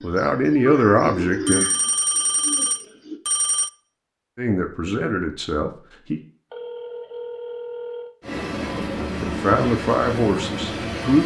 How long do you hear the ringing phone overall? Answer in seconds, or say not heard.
4 s.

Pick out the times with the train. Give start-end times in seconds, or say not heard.
8.2-11.2.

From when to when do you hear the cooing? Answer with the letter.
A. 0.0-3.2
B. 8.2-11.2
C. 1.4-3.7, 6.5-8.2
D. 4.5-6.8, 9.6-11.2
A.